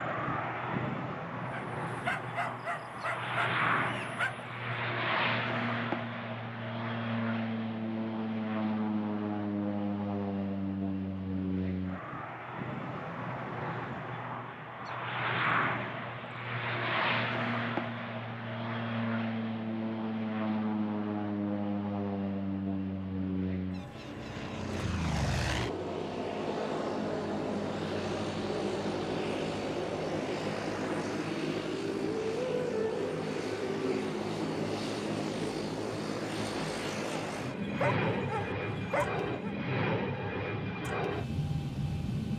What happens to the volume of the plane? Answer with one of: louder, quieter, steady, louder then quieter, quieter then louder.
steady.